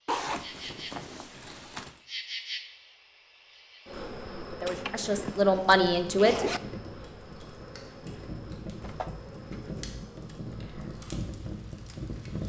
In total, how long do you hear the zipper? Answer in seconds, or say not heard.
5 s.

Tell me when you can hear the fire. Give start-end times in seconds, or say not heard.
5.7-12.4.